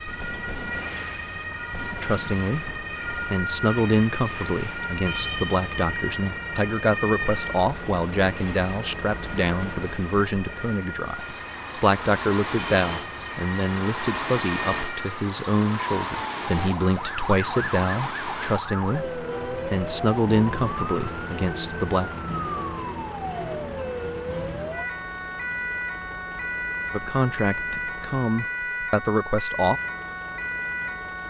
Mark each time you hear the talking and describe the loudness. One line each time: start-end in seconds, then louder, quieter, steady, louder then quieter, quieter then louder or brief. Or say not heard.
1.8-22.1 steady
26.9-29.8 brief.